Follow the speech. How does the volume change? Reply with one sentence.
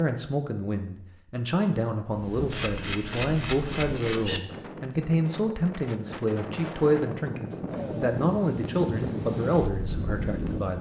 The volume of the speech stays about the same.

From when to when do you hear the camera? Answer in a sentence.
The camera can be heard from 2.5 to 4.4 s.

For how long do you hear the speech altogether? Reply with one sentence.
You can hear the speech for 11 seconds altogether.